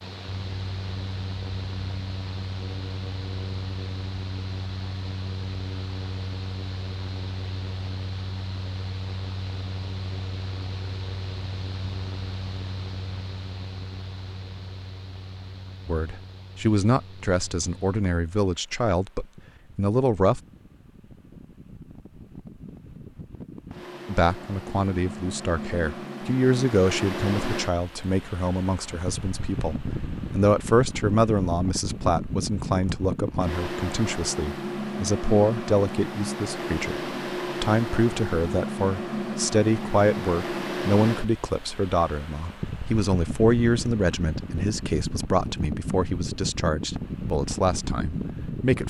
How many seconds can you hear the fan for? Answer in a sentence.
You can hear the fan for 49 seconds altogether.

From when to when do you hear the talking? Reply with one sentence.
The talking can be heard from 15.8 to 20.4 s and from 24.1 to 48.8 s.